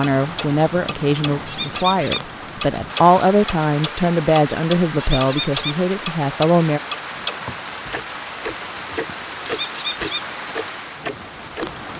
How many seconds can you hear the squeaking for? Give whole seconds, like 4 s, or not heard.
2 s.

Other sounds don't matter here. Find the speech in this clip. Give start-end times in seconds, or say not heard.
0.0-6.8.